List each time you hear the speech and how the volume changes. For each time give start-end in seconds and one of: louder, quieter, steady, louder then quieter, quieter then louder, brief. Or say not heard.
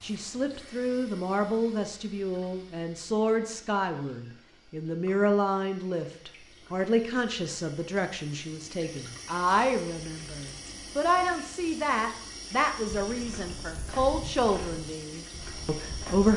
0.0-16.3 steady.